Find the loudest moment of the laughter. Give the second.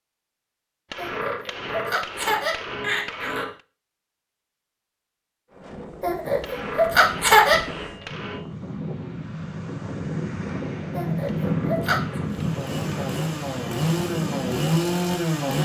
7 s.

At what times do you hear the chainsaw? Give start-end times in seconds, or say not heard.
12.2-15.6.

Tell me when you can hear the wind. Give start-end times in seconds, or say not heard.
5.5-15.3.